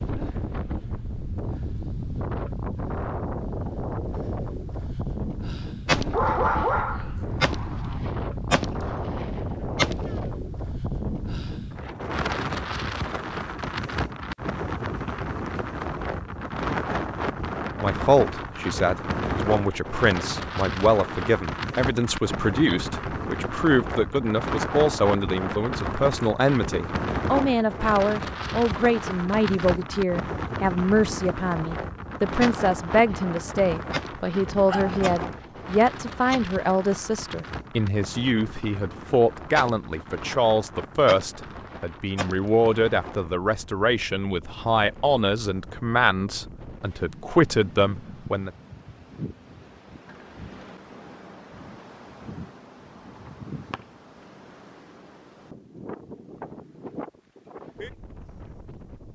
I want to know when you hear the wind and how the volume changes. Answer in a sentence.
The wind can be heard from 0.0 to 59.1 s, getting quieter.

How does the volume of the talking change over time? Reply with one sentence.
The volume of the talking stays about the same.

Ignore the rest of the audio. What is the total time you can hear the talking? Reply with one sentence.
You can hear the talking for 31 seconds altogether.